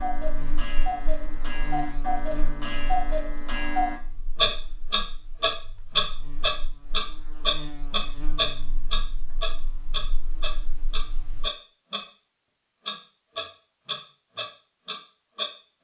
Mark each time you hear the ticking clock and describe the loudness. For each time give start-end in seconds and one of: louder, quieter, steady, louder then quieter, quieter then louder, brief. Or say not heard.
0.0-12.1 louder then quieter
12.8-15.5 brief.